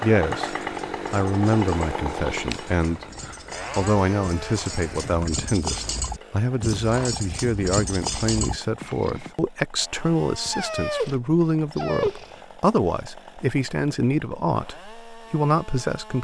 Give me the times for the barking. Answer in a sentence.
You can hear the barking from 10.4 to 12.3 s.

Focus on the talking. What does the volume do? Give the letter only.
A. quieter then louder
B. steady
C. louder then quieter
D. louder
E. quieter
B.